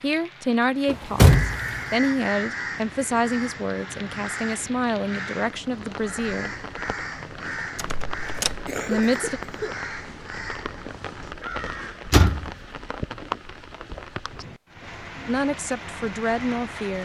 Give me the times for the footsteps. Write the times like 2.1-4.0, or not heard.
not heard.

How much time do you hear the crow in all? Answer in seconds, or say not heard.
11 s.